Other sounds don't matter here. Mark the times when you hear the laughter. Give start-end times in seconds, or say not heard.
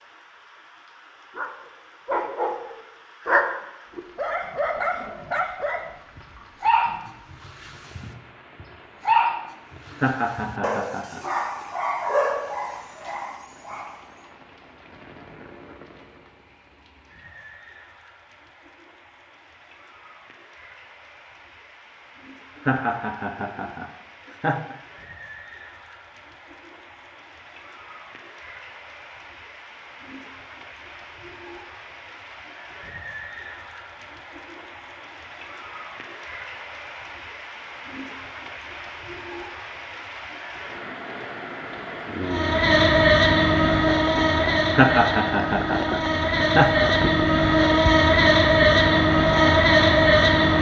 9.9-11.2, 22.6-24.8, 44.7-46.9.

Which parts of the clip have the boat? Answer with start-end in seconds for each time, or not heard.
42.2-50.5.